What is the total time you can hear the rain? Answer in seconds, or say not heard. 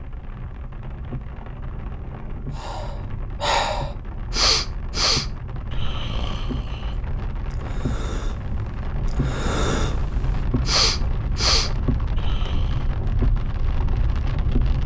15 s.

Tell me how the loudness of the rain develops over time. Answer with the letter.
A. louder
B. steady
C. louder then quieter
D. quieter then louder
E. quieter
A.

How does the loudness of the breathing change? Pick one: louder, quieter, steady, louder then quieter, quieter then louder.
quieter then louder.